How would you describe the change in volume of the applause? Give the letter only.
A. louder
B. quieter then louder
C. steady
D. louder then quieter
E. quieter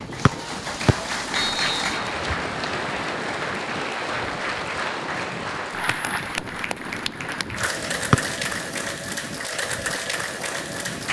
C.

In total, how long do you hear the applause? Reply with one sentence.
The applause can be heard for 11 seconds in total.